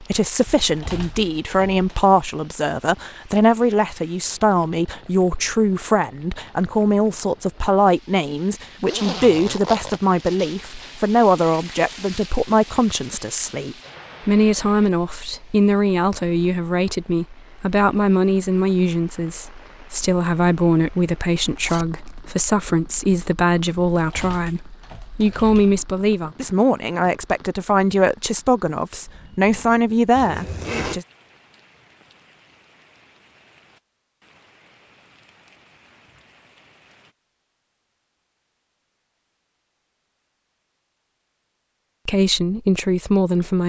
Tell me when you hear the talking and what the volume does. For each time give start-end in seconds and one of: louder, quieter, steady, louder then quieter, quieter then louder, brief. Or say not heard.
0.0-31.1 steady
42.0-43.6 brief.